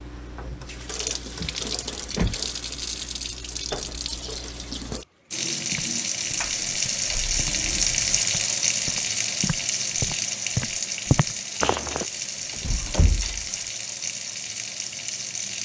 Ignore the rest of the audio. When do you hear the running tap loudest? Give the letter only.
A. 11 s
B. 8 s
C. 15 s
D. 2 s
B.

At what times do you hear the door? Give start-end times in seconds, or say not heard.
1.4-2.4, 6.4-8.2, 12.5-13.6.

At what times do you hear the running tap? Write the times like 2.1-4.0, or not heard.
0.0-15.5.